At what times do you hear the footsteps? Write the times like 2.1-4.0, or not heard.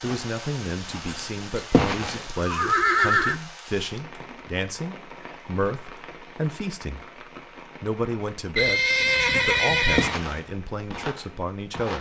0.0-2.2, 9.9-11.9.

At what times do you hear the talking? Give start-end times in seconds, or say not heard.
0.0-7.0, 7.8-8.8, 9.4-11.9.